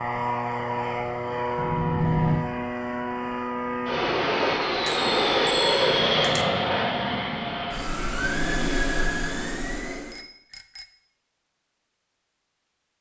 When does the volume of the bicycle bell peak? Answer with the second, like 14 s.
2 s.